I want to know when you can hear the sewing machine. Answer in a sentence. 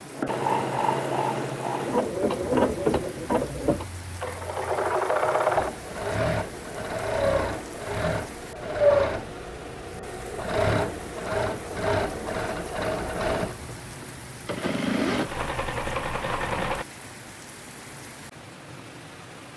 You can hear the sewing machine from 0.1 to 16.9 s.